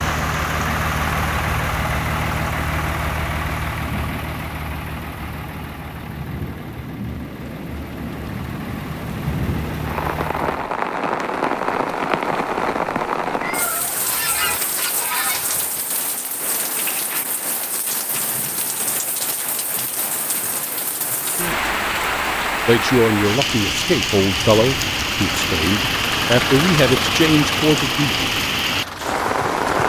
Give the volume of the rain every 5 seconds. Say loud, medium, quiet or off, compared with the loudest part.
medium, medium, loud, medium, loud, loud.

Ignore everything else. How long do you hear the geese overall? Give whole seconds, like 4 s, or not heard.
2 s.